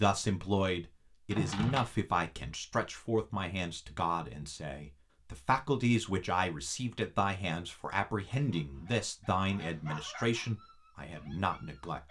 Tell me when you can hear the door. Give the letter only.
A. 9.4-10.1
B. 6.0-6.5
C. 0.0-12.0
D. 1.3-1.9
D.